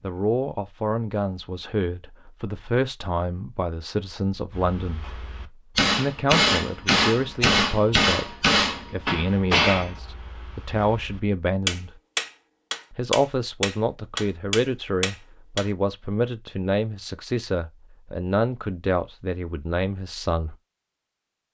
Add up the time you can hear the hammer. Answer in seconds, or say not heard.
11 s.